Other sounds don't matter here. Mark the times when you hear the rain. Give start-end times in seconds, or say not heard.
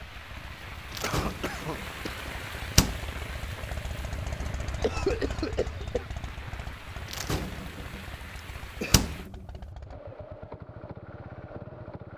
0.0-9.3.